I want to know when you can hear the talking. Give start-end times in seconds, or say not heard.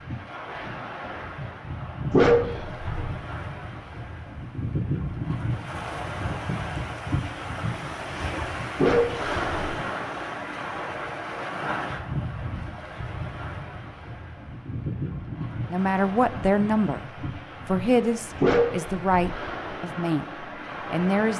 15.7-21.3.